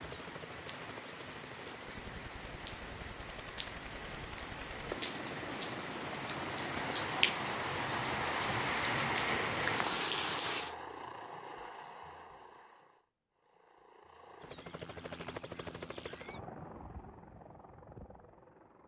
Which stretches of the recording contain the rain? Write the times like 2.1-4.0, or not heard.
0.0-10.8.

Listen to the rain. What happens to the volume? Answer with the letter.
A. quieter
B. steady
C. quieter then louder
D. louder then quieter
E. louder
E.